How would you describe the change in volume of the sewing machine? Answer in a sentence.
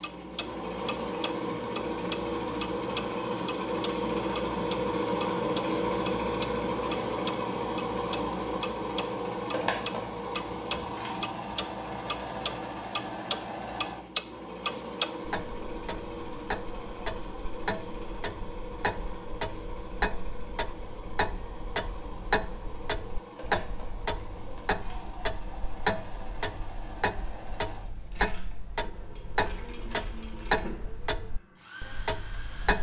The loudness of the sewing machine goes down.